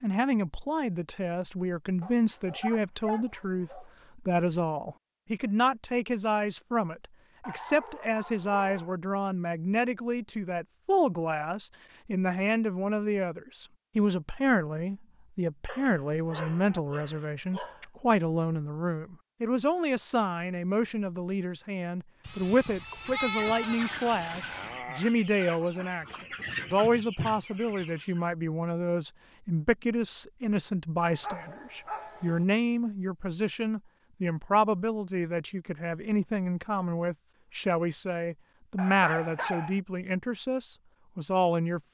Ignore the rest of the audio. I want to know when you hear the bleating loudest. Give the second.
23 s.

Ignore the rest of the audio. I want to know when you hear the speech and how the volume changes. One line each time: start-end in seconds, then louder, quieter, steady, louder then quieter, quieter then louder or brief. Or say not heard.
0.0-41.8 steady.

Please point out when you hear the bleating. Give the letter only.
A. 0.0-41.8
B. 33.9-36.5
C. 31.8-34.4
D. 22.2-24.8
D.